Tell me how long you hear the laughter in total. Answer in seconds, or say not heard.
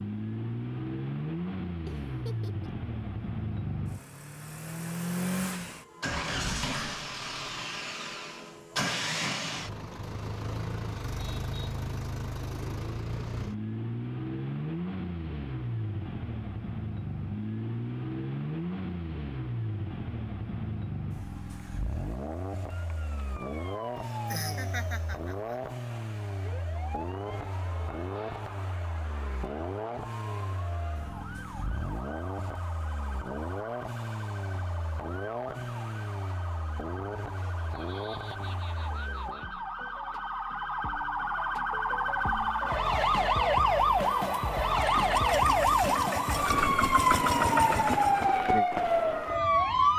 5 s.